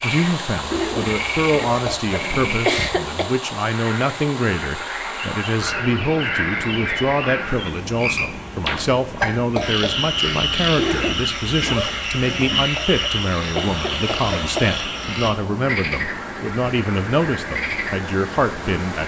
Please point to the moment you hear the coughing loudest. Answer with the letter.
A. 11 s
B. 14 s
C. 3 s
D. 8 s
C.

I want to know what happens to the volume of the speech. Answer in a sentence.
The volume of the speech stays about the same.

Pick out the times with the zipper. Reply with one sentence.
You can hear the zipper from 0.7 to 2.6 s and from 10.8 to 12.7 s.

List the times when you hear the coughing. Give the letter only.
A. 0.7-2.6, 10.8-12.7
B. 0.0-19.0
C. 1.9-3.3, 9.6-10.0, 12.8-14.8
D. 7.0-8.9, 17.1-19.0
C.